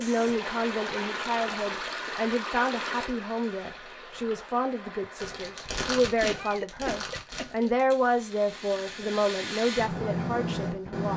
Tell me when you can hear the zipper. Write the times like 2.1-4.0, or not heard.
not heard.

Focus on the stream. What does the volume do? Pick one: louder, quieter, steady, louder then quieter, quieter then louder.
quieter.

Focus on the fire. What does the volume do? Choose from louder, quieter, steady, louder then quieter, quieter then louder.
quieter then louder.